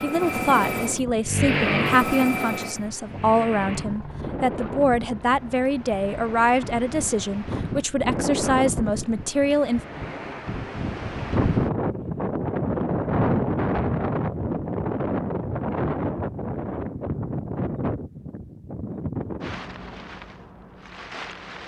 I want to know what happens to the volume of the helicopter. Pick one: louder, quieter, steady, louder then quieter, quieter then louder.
quieter.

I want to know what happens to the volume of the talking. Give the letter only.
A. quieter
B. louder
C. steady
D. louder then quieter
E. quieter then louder
C.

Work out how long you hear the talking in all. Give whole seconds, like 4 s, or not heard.
10 s.